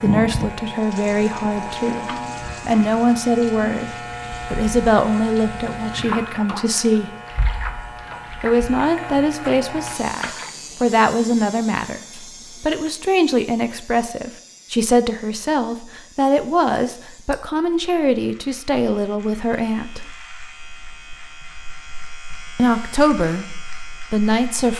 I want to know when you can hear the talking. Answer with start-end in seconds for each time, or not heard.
0.0-3.9, 4.5-7.1, 8.4-20.1, 22.6-23.4, 24.1-24.7.